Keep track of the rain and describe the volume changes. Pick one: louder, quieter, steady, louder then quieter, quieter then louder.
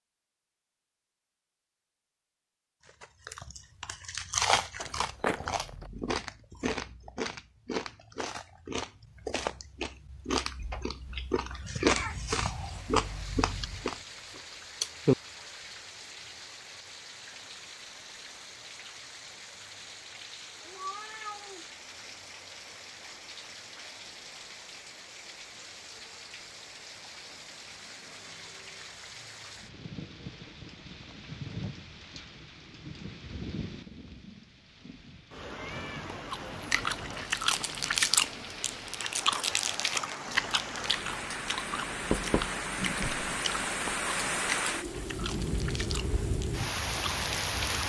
louder.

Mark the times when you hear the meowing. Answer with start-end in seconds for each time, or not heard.
10.6-12.8, 20.6-22.1, 35.6-36.0.